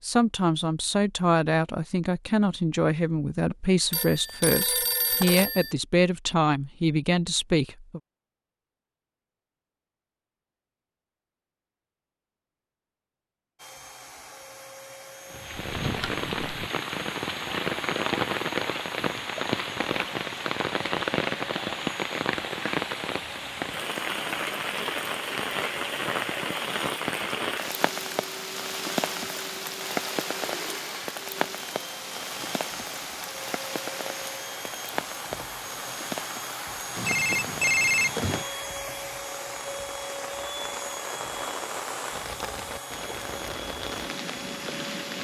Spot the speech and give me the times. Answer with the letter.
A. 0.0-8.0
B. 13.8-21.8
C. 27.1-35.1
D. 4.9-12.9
A.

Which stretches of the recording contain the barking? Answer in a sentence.
You can't hear the barking here.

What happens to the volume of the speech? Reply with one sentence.
The loudness of the speech stays about the same.